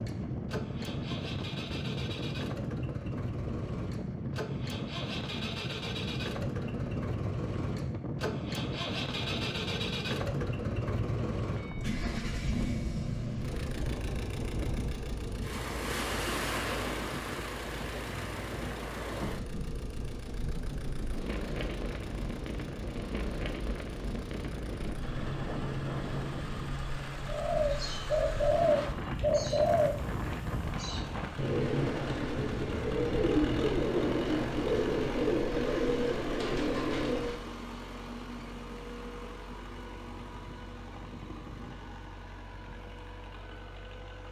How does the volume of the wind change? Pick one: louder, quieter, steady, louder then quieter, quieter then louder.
steady.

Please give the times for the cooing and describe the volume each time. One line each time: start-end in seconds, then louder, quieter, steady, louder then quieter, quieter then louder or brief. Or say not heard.
27.2-37.5 steady.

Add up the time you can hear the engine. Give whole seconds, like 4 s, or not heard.
44 s.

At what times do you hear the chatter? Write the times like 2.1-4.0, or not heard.
not heard.